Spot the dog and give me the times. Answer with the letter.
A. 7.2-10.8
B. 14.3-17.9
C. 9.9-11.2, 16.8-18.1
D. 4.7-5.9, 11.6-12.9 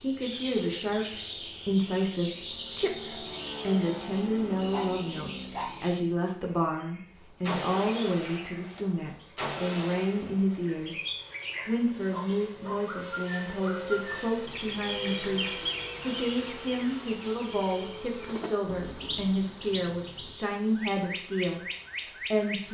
D.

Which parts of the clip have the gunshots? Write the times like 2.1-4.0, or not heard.
7.2-10.8.